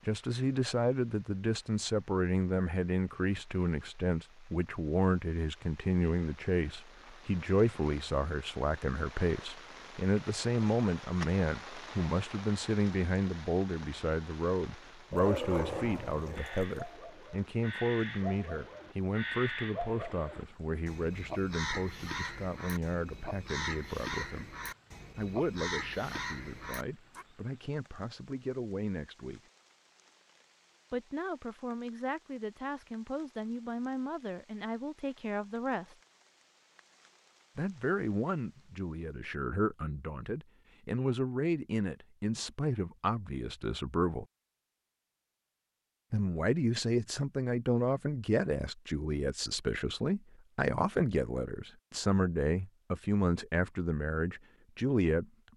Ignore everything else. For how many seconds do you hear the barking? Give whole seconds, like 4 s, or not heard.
2 s.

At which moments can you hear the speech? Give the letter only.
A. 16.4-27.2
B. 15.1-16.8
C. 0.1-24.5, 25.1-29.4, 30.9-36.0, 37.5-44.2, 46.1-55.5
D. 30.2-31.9
C.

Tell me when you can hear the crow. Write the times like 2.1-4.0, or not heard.
16.4-27.2.